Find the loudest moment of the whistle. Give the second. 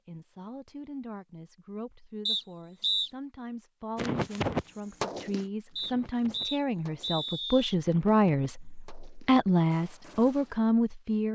3 s.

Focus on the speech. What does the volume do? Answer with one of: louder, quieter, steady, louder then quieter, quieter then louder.
louder.